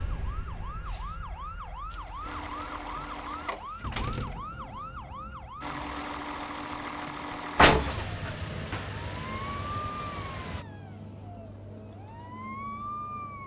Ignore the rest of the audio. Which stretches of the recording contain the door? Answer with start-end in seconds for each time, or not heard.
7.5-8.8.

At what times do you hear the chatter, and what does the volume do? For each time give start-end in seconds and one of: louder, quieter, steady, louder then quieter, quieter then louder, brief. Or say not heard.
not heard.